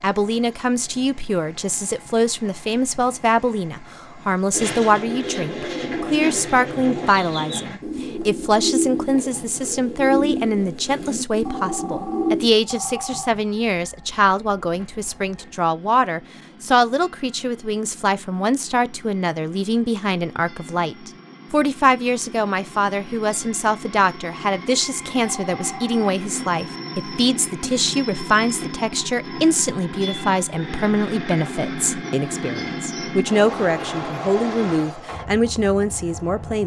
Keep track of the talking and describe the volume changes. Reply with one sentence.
The loudness of the talking stays about the same.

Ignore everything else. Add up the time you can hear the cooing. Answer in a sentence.
You can hear the cooing for 8 seconds altogether.